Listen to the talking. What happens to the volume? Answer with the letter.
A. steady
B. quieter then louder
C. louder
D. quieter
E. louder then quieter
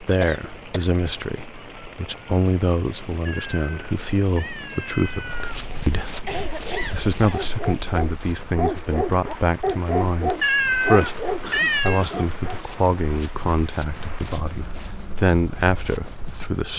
A.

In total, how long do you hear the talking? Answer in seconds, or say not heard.
17 s.